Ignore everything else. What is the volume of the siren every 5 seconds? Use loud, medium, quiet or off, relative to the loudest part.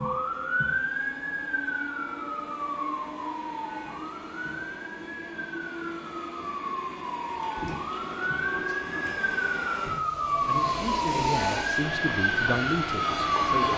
medium, medium, loud.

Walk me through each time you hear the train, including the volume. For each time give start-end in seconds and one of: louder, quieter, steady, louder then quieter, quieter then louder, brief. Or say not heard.
0.0-13.7 louder.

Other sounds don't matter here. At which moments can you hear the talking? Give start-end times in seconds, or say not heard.
10.4-13.7.